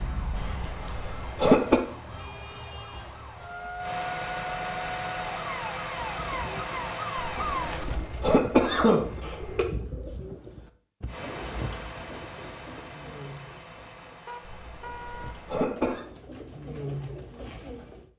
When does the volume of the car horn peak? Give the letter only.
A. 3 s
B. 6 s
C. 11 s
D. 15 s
D.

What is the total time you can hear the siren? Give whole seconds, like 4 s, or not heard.
8 s.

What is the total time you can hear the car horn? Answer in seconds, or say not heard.
2 s.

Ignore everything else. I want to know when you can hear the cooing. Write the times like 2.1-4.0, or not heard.
6.0-18.1.